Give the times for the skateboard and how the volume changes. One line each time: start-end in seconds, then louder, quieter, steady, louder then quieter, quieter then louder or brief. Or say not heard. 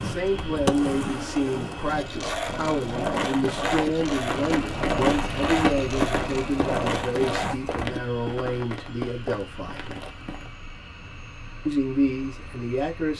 0.0-8.0 steady.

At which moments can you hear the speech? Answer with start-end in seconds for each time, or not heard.
0.0-9.9, 11.7-13.1.